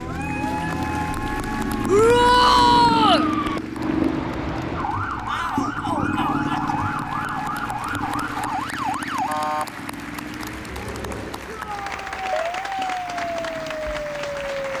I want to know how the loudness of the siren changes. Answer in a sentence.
The loudness of the siren stays about the same.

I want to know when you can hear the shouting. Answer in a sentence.
You can hear the shouting from 1.9 to 3.2 s, from 5.2 to 6.8 s and from 11.4 to 12.6 s.